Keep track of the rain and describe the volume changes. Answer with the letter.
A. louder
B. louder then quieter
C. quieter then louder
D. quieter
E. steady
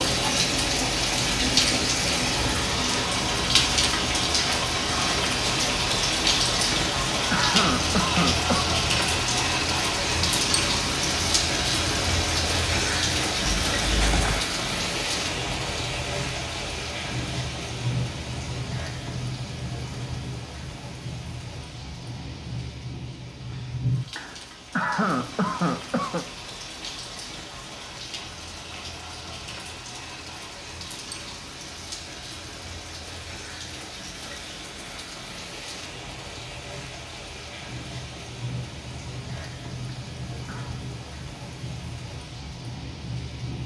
D.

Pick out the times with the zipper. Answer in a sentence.
The zipper can be heard from 13.4 to 14.4 s.